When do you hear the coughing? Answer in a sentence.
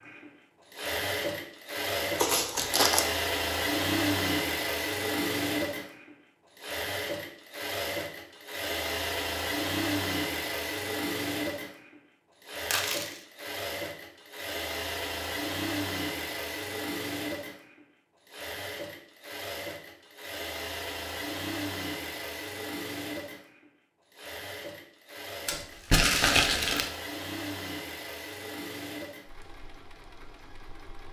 The coughing can't be heard in this clip.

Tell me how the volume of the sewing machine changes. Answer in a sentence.
The volume of the sewing machine goes down.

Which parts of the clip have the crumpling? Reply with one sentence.
You can hear the crumpling from 2.1 to 3.0 s, from 12.7 to 13.2 s and from 25.4 to 26.9 s.